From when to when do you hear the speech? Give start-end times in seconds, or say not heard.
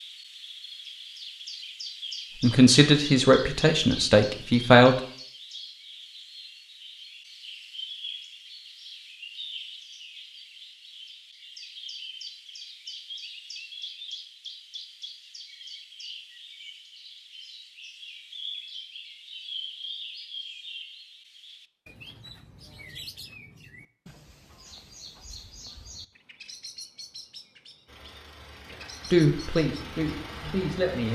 2.4-5.0, 29.1-31.1.